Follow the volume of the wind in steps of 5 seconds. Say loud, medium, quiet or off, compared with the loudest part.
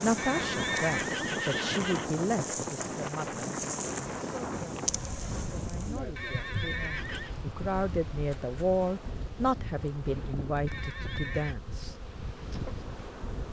loud, medium, medium.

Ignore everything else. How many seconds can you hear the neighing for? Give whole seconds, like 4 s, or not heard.
4 s.